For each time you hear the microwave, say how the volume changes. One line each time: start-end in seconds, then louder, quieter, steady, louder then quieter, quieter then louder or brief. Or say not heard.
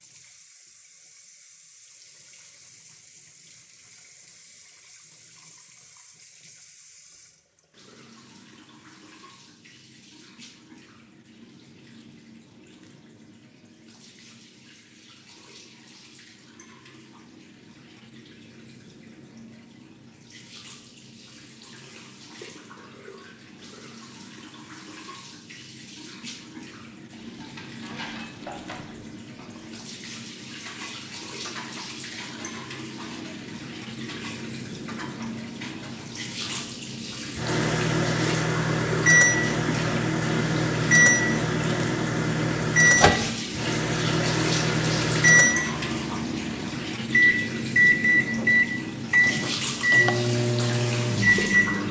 37.4-51.8 steady.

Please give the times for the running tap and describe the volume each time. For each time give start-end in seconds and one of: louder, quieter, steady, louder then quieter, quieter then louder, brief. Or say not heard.
0.0-51.8 louder.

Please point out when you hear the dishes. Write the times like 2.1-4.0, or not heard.
27.1-36.6.